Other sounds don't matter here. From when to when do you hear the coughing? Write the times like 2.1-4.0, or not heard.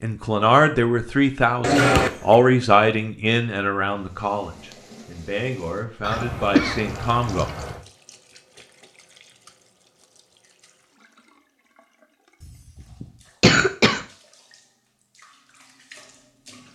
1.6-2.4, 6.0-7.8, 12.4-14.1.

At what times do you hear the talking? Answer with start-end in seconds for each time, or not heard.
0.0-7.5.